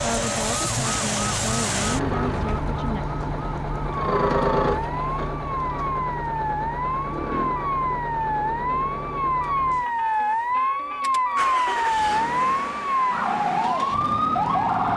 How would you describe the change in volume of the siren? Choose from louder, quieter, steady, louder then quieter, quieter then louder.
louder.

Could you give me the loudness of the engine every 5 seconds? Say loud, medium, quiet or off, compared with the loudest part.
loud, medium, medium.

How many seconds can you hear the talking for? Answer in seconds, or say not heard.
3 s.